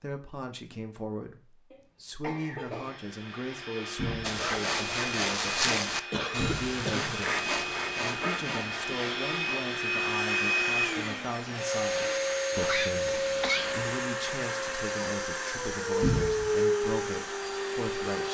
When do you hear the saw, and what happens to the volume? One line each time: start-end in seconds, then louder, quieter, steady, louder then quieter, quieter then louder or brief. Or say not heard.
4.2-13.9 quieter.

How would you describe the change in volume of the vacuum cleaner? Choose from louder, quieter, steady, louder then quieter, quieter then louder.
louder.